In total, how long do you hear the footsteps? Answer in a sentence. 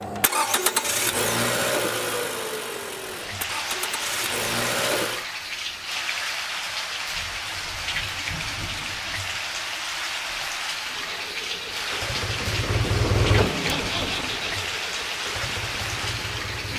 The footsteps can't be heard in this clip.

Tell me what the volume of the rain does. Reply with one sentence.
The volume of the rain stays about the same.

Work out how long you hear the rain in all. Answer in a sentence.
The rain can be heard for 14 seconds in total.